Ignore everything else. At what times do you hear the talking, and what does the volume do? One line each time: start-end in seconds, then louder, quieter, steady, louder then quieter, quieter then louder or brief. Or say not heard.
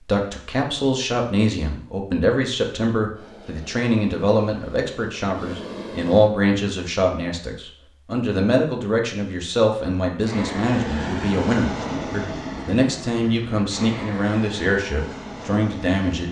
0.0-16.2 steady.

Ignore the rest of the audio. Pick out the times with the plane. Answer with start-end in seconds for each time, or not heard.
3.1-6.3, 10.2-16.2.